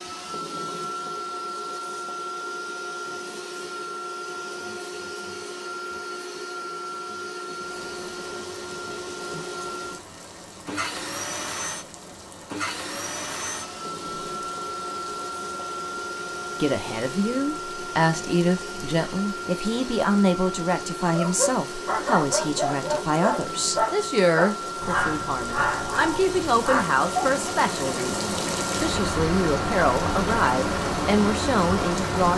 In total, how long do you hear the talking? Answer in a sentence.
You can hear the talking for 16 seconds altogether.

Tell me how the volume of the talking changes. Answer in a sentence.
The loudness of the talking stays about the same.